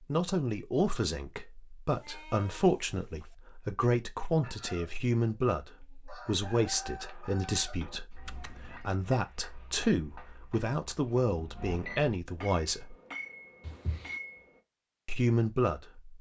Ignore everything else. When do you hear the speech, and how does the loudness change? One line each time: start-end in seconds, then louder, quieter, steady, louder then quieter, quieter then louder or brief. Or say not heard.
0.1-12.9 steady
15.1-16.1 brief.